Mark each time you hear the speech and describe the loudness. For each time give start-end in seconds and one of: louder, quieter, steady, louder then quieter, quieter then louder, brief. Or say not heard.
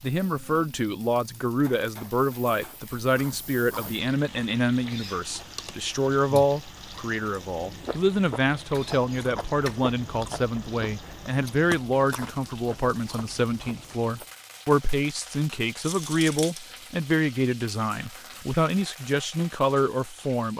0.0-20.5 steady.